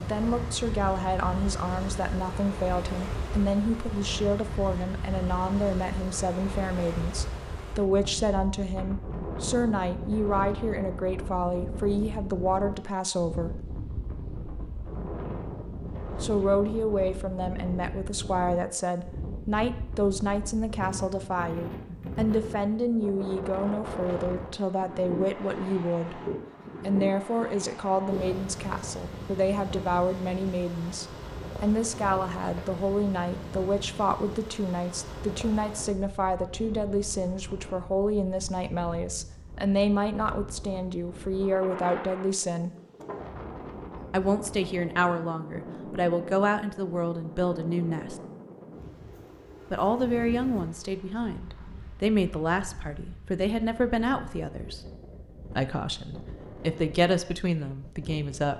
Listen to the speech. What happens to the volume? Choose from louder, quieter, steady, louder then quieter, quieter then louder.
steady.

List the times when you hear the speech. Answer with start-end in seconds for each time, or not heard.
0.0-13.7, 16.2-26.2, 26.8-42.7, 44.1-48.2, 49.7-54.8, 55.5-58.5.